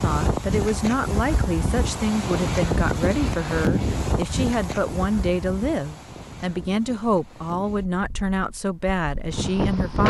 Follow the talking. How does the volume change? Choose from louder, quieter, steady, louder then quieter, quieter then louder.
steady.